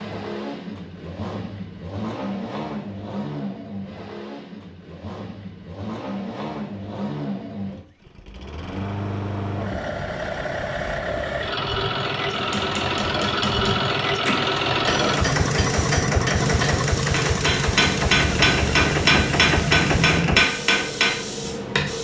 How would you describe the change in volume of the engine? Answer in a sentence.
The volume of the engine goes up.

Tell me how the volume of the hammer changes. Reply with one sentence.
The loudness of the hammer goes up.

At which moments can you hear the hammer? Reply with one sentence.
The hammer can be heard from 12.3 to 21.9 s.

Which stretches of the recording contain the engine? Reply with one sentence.
The engine can be heard from 0.0 to 20.4 s.